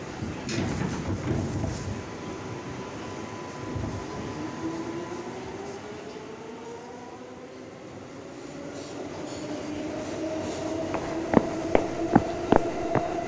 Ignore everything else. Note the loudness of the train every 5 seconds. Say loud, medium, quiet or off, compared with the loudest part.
loud, medium, loud.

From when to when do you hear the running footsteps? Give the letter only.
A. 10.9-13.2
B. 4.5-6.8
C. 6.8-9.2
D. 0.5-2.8
A.